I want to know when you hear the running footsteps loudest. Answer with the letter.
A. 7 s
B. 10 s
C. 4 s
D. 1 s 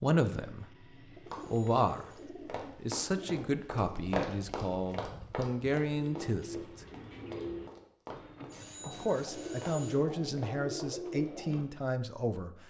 C.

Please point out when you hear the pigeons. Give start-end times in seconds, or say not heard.
0.3-11.7.